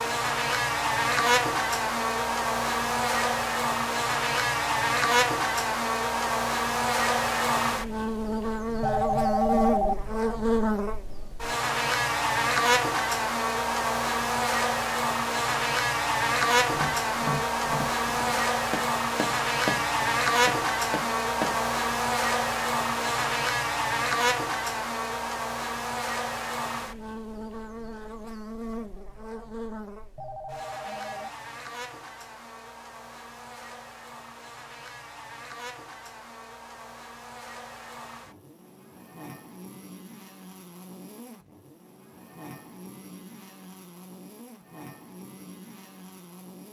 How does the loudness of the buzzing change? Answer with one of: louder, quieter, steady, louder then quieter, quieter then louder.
quieter.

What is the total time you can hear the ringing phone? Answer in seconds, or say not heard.
2 s.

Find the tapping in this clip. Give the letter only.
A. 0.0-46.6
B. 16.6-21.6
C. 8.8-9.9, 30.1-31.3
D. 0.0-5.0
B.